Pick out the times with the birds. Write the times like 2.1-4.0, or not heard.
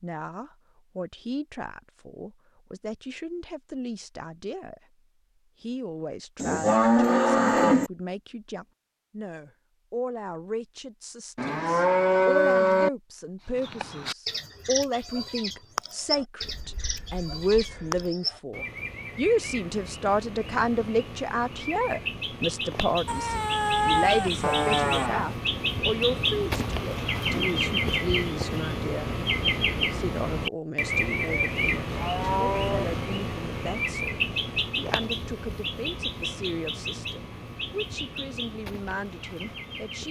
13.4-40.0.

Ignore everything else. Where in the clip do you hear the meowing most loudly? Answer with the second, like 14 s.
24 s.